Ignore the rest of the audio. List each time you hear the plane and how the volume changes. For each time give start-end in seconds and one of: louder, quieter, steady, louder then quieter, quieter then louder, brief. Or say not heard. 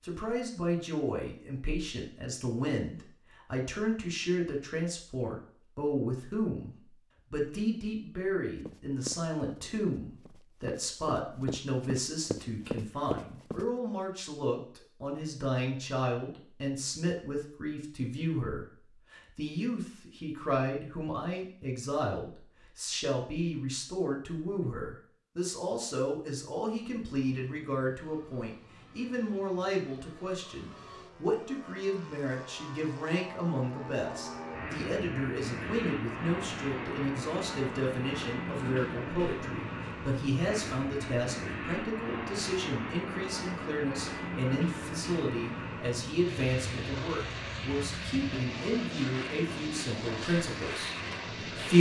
26.7-51.7 louder.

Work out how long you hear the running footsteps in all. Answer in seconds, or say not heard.
5 s.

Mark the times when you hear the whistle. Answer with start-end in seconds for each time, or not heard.
not heard.